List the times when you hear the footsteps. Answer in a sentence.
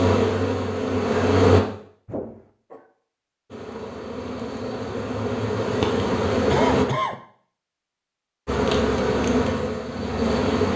The footsteps can't be heard in this clip.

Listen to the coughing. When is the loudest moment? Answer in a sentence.
The loudest moment of the coughing is at 7 seconds.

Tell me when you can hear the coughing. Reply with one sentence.
You can hear the coughing from 2.0 to 2.9 s and from 6.5 to 7.2 s.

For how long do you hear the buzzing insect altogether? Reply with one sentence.
The buzzing insect can be heard for 7 seconds in total.